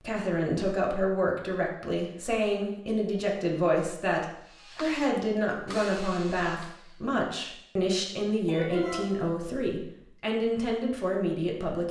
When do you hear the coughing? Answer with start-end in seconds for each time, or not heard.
8.4-9.2.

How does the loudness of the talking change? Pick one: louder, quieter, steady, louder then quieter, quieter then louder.
steady.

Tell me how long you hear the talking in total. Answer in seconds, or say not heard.
12 s.